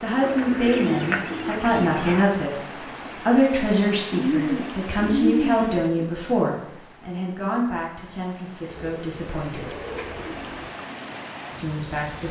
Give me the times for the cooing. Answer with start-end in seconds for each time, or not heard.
0.2-2.2, 4.1-6.1, 8.7-10.7.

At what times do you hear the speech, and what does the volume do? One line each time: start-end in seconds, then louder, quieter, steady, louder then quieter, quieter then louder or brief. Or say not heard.
0.0-9.8 quieter
11.6-12.2 brief.